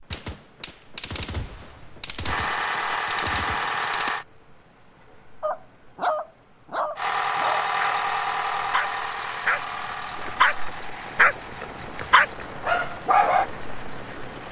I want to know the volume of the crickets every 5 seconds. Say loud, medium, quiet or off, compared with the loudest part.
quiet, quiet, loud.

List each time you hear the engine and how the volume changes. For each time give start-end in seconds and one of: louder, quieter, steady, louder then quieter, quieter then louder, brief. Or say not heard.
2.2-4.2 brief
7.0-14.4 quieter.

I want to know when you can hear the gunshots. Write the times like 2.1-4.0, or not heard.
0.1-4.1.